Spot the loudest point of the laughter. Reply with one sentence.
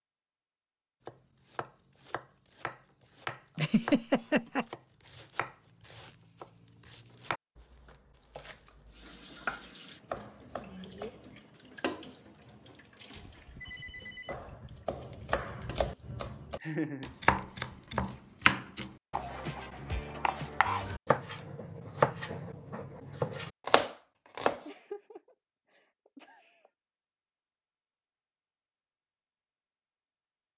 The volume of the laughter peaks at 4 seconds.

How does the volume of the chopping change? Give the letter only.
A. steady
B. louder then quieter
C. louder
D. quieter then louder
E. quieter
C.